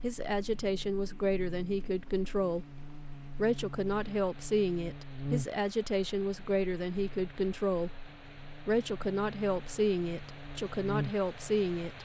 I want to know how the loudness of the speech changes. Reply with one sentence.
The volume of the speech stays about the same.